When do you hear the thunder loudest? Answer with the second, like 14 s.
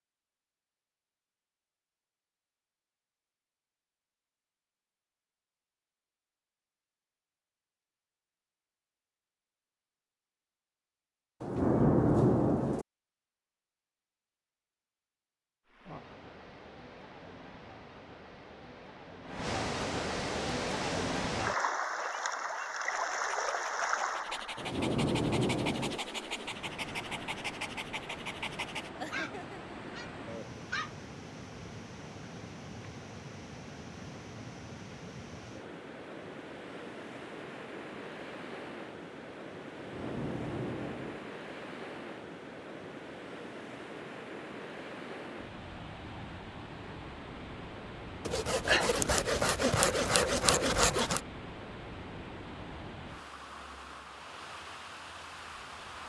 12 s.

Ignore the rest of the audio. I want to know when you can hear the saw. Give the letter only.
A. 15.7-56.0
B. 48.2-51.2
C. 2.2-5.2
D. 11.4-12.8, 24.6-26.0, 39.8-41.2
B.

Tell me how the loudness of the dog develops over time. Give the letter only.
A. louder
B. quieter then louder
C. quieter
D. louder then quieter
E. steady
A.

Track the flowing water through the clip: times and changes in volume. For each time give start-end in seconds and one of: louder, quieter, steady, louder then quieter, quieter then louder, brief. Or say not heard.
15.7-56.0 quieter.